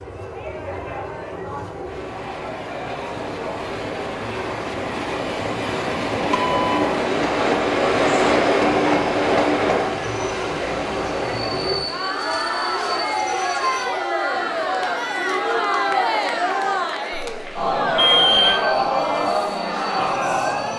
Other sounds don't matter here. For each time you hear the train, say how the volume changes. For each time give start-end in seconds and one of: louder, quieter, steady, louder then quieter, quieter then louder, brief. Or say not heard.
0.0-20.7 louder then quieter.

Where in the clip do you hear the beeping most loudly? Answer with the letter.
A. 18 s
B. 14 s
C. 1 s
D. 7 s
A.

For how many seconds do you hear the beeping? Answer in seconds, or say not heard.
2 s.